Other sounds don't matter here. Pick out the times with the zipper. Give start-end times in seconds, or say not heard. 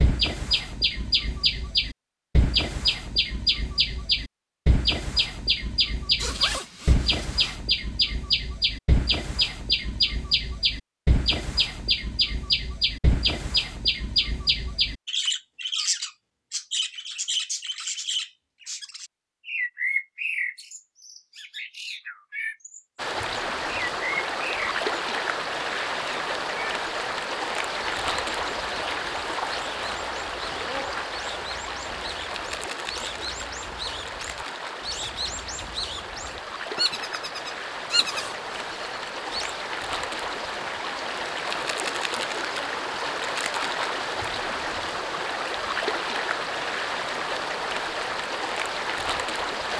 6.2-7.6, 37.9-38.8.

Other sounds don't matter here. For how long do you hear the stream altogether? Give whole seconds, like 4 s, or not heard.
27 s.